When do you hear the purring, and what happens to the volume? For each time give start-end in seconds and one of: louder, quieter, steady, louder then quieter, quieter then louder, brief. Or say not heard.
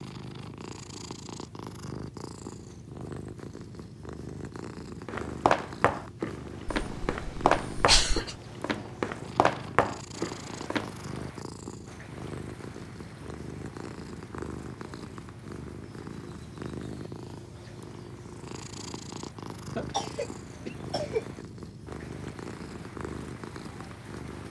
0.0-24.4 steady.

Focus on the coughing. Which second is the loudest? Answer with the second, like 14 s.
8 s.